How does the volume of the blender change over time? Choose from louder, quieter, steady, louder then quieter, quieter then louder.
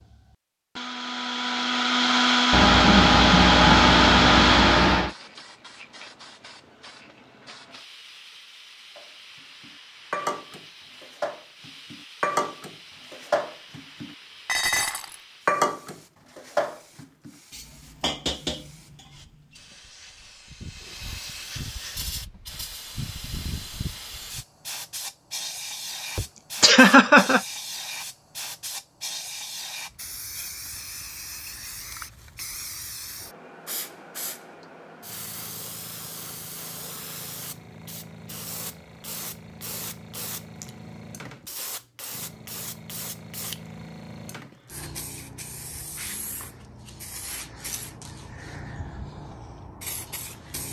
louder.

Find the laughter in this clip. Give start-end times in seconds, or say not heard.
2.5-5.2, 26.1-27.4.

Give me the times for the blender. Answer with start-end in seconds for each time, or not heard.
0.1-5.0.